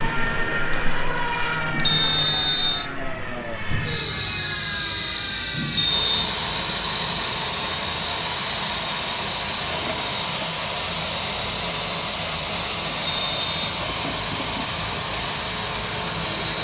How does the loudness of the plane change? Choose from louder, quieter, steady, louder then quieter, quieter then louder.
steady.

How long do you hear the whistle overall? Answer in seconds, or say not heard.
2 s.